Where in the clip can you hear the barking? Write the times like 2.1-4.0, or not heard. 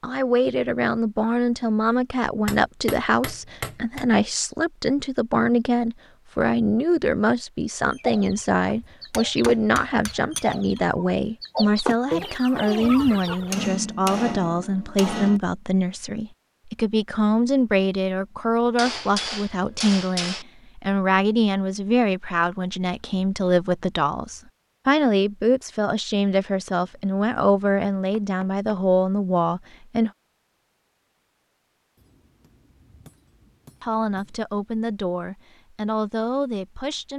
not heard.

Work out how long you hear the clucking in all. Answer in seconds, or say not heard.
6 s.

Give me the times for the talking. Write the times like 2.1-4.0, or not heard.
0.0-30.1, 33.8-37.1.